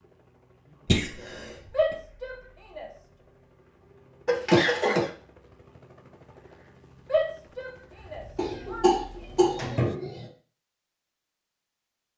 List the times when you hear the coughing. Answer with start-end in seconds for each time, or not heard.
0.8-1.9, 4.2-5.1, 8.3-10.2.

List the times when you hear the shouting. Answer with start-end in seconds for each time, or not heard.
1.7-2.9, 7.0-8.9.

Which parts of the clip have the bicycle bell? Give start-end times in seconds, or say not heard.
not heard.